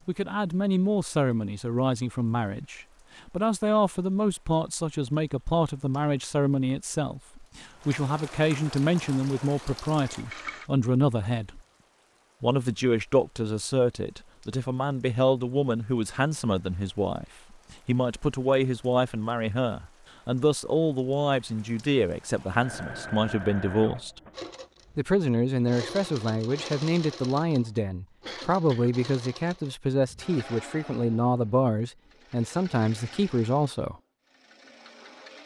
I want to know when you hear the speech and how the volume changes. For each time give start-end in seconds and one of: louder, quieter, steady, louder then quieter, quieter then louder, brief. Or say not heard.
0.1-11.6 steady
12.4-24.2 steady
24.9-34.0 steady.